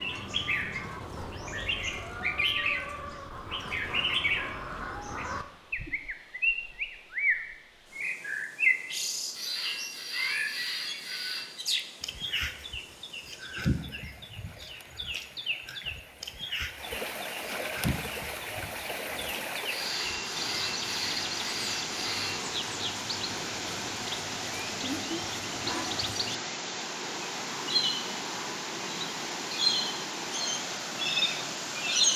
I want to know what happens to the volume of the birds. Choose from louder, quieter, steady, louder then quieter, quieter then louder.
quieter then louder.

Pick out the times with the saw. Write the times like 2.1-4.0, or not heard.
9.3-11.4, 19.6-22.5.